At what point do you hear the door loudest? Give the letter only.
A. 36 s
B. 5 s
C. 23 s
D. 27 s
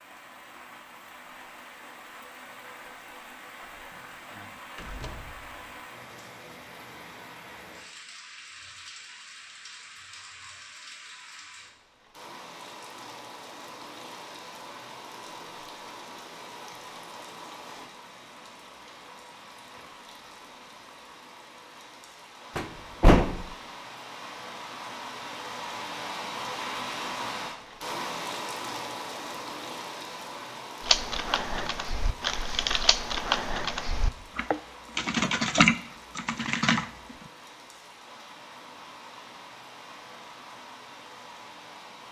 C.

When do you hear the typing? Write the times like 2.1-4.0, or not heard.
30.8-37.1.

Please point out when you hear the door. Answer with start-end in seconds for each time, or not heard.
3.8-4.2, 4.8-5.7, 22.6-23.5.